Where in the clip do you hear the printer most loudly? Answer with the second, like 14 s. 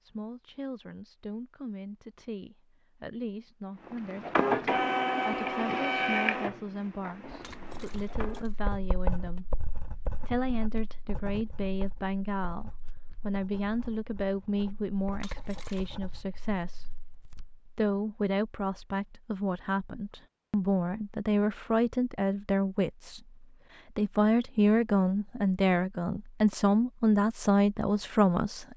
5 s.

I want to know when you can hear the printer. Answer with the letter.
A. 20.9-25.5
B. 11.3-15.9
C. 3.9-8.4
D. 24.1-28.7
C.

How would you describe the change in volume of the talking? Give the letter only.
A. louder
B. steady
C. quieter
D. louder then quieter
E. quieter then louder
A.